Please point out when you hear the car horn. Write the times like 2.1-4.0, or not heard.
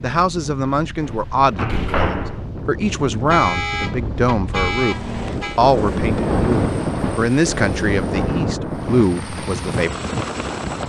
3.1-5.6.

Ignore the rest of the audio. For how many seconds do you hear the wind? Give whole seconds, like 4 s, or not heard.
11 s.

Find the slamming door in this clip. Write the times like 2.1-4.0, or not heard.
1.1-2.5.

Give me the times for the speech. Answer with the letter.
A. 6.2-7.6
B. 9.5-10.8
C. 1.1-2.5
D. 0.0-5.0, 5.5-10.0
D.